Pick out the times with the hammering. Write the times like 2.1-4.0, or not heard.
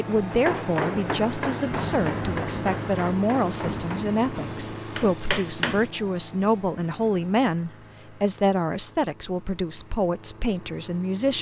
0.3-5.9.